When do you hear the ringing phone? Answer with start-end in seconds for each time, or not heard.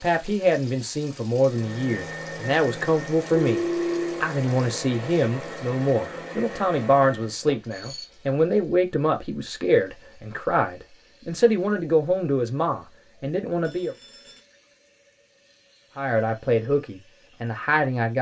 3.3-4.2, 7.5-8.1, 13.6-14.4.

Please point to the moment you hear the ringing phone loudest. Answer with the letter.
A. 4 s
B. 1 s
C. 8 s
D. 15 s
A.